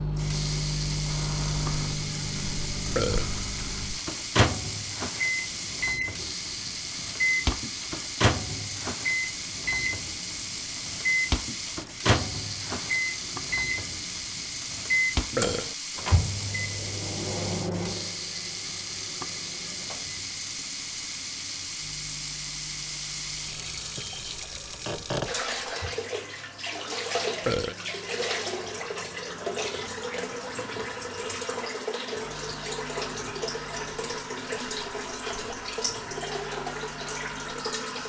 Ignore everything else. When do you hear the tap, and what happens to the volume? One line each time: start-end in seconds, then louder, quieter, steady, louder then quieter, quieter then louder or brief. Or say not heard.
0.0-38.0 steady.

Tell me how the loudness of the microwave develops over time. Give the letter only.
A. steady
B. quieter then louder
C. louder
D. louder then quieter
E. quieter
E.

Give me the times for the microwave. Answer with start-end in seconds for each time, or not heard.
0.0-38.0.